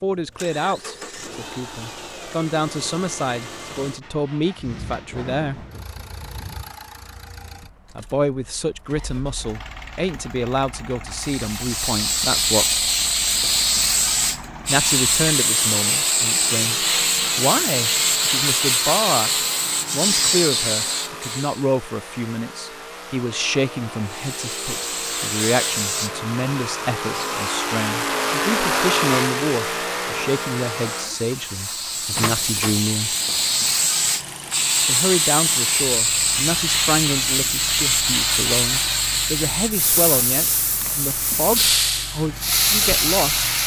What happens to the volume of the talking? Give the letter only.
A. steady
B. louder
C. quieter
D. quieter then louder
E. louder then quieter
A.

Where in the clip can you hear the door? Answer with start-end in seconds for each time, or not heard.
32.1-32.9.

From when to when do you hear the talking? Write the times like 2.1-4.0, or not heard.
0.0-5.7, 8.0-12.8, 14.7-19.3, 19.9-33.1, 34.9-43.5.